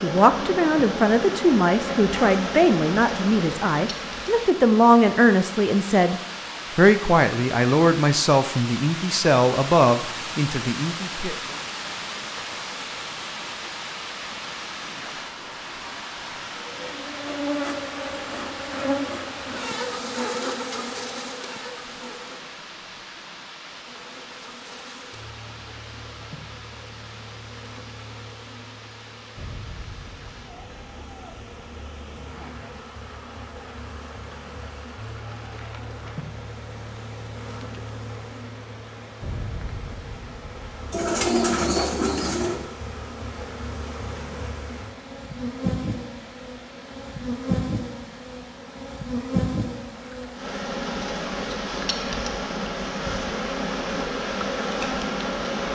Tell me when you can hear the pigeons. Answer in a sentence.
The pigeons can be heard from 40.9 to 42.6 s.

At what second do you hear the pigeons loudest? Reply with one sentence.
The loudest moment of the pigeons is at 41 seconds.